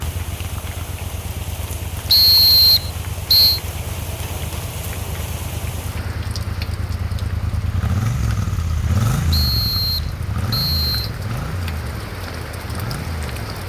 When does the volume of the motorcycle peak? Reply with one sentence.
The loudest moment of the motorcycle is at 9 seconds.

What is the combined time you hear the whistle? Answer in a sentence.
You can hear the whistle for 3 seconds altogether.